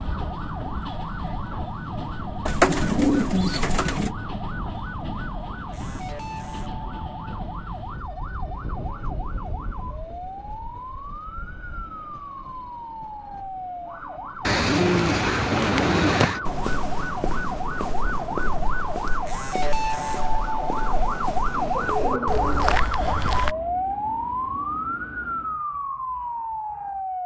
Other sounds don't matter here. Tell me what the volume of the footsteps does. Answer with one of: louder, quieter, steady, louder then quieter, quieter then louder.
quieter then louder.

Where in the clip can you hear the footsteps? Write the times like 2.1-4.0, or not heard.
15.6-23.6.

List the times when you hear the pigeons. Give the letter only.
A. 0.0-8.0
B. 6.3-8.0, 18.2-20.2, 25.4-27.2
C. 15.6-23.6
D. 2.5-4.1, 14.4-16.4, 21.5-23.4
D.